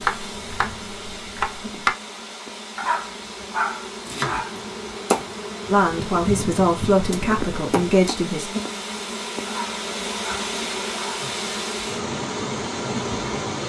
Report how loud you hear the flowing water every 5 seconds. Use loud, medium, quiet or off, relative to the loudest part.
medium, medium, loud.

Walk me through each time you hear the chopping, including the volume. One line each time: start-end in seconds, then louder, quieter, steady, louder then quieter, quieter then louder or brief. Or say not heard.
0.0-1.9 brief
4.0-8.2 louder then quieter.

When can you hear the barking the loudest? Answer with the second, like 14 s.
4 s.